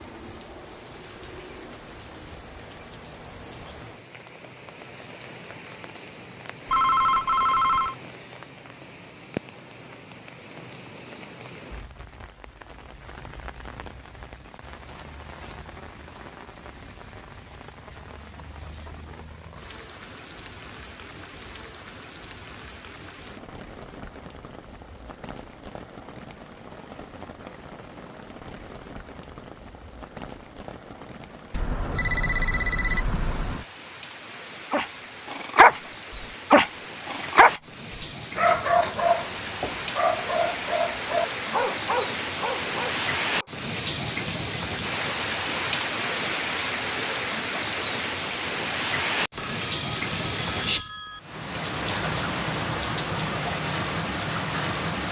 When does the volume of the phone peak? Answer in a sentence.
The loudest moment of the phone is at 7 seconds.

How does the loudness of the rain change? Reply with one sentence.
The volume of the rain goes up.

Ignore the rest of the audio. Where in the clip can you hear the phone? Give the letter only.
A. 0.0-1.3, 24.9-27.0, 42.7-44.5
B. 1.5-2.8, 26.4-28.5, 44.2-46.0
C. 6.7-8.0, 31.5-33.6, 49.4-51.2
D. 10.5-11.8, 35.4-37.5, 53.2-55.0
C.